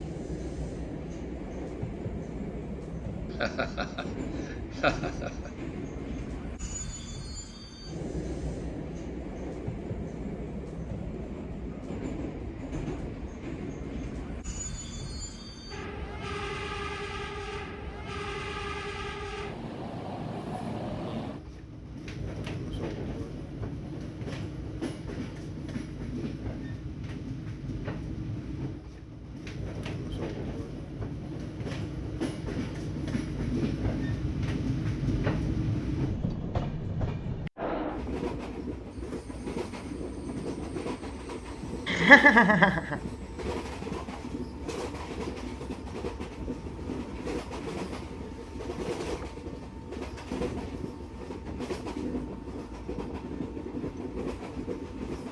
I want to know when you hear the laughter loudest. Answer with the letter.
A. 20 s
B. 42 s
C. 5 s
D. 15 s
B.